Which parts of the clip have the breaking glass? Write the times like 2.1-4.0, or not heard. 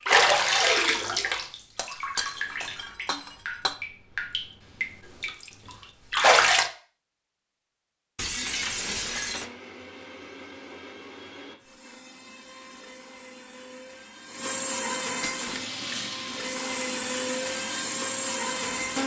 1.8-3.8, 8.2-9.5, 15.2-15.8.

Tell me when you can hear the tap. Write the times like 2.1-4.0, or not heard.
0.1-6.7, 15.3-19.0.